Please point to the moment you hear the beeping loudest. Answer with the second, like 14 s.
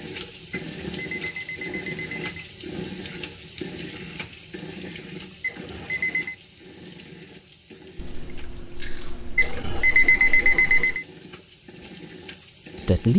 10 s.